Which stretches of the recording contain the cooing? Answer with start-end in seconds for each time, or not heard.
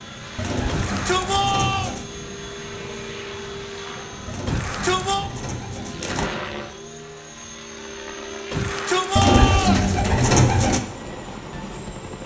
0.3-2.0, 4.2-6.3, 9.2-10.8.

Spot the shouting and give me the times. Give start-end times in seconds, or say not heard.
0.7-1.9, 4.5-5.3, 8.5-9.9.